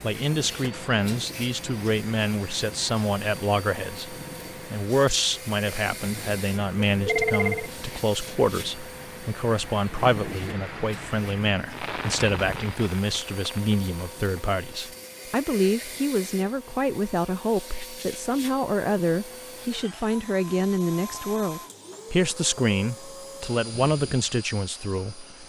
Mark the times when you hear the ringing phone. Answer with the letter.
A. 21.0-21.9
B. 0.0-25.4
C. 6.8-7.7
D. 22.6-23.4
C.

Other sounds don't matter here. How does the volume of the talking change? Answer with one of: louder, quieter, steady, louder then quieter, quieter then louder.
steady.